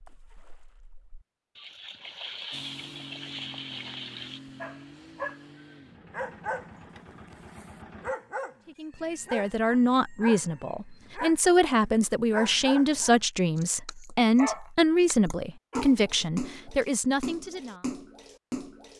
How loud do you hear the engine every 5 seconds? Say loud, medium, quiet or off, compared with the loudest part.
loud, loud, off, off.